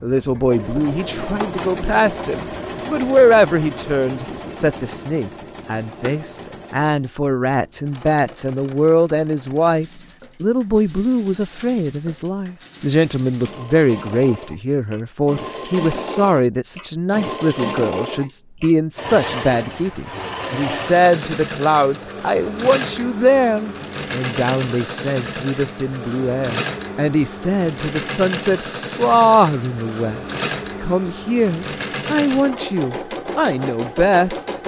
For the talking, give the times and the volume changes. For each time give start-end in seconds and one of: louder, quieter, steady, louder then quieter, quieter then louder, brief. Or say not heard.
0.0-34.5 steady.